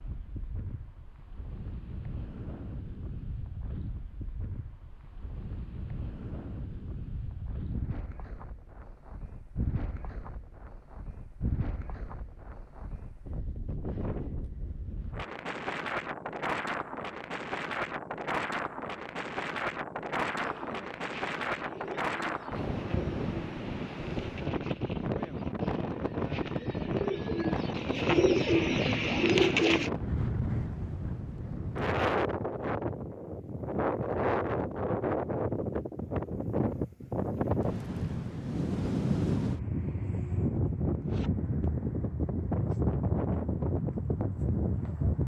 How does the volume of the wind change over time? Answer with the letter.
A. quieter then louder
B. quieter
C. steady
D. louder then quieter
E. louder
E.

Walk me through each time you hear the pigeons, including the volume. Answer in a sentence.
The pigeons can be heard from 20.4 to 29.9 s, getting louder.